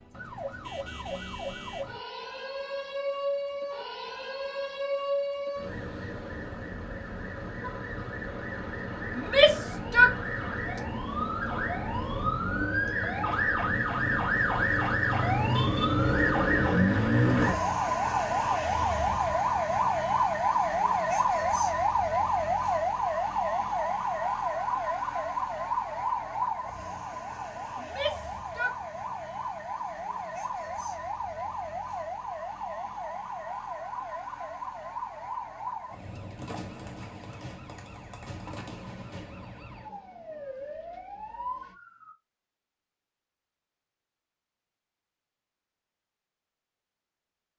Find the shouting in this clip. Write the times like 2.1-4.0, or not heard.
9.2-10.2, 27.8-28.8.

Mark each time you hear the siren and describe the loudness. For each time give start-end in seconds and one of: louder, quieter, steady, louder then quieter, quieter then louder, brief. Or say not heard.
0.0-42.1 louder then quieter.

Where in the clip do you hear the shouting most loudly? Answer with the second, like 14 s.
10 s.